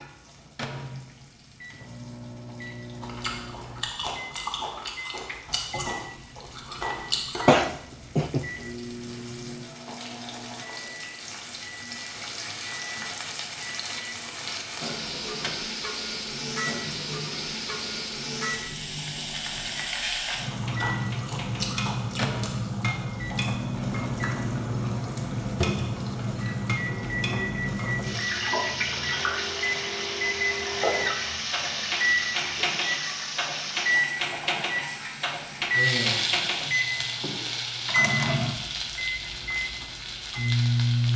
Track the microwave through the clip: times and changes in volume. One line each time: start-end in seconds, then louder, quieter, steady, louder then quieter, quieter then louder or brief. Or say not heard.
0.0-41.1 louder.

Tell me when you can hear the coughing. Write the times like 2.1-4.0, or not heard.
7.5-8.4.